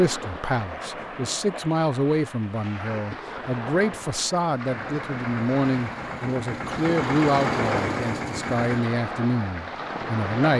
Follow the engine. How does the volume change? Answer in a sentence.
The volume of the engine goes up.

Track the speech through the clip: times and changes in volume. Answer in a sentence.
You can hear the speech from 0.0 to 10.5 s, at a steady volume.